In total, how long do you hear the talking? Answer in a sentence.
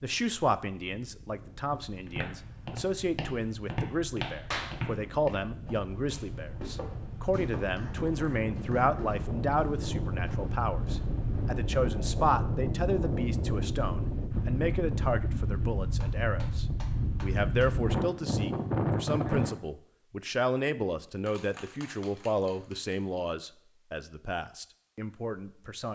The talking can be heard for 26 seconds in total.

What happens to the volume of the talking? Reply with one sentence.
The volume of the talking stays about the same.